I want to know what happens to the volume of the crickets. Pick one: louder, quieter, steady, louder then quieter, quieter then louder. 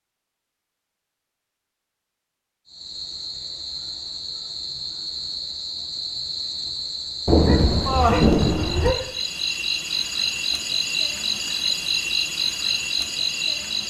louder.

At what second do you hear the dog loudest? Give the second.
9 s.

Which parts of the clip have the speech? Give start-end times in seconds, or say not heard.
not heard.